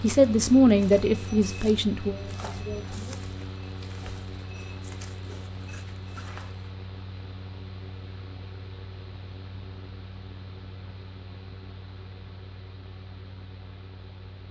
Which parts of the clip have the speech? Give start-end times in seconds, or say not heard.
0.0-3.2.